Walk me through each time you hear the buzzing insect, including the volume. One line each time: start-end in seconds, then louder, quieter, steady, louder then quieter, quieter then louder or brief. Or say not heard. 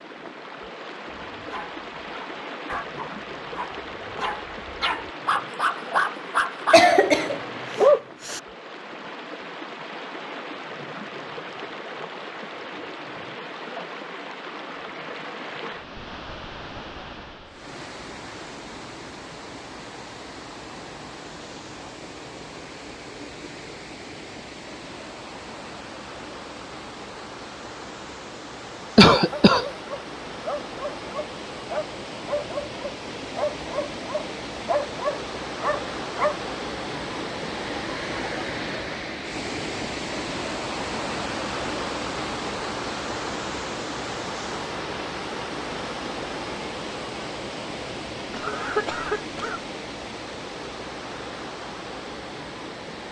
not heard.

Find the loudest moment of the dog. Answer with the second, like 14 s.
8 s.